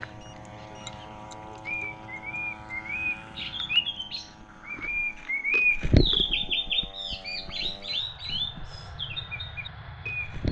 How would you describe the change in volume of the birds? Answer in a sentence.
The volume of the birds goes up, then down.